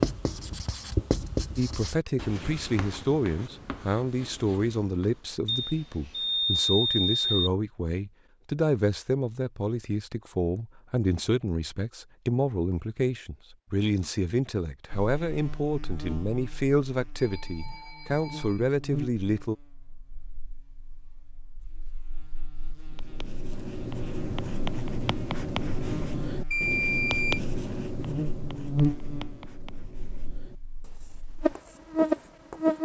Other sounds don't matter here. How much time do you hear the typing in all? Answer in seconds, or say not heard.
not heard.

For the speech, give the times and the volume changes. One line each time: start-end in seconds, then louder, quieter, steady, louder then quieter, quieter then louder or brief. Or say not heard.
1.6-19.6 steady.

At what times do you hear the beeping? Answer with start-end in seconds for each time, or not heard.
5.5-7.5, 17.1-18.6, 26.5-27.4.